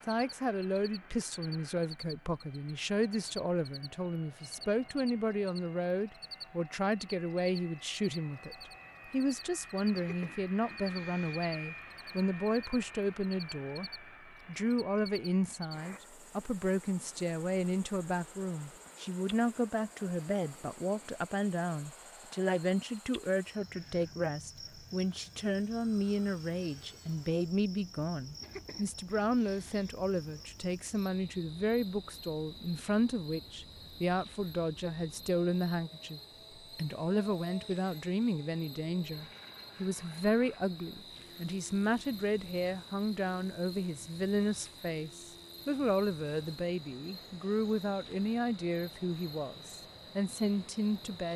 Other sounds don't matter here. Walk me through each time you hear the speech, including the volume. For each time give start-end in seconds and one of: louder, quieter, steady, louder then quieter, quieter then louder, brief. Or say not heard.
0.1-51.3 steady.